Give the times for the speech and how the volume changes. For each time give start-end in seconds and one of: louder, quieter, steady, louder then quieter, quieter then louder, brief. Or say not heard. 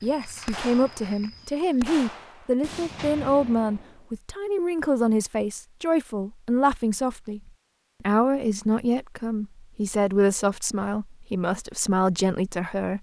0.0-12.9 steady.